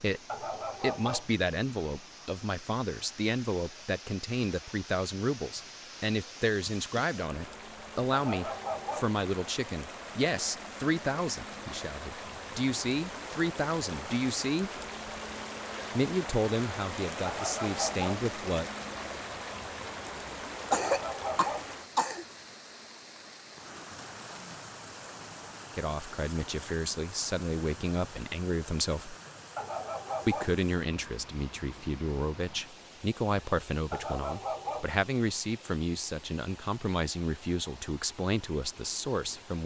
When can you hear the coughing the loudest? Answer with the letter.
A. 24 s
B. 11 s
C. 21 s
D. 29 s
C.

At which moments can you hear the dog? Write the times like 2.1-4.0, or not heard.
0.2-1.3, 8.1-9.2, 17.2-18.2, 20.7-21.7, 29.6-30.6, 33.9-34.9.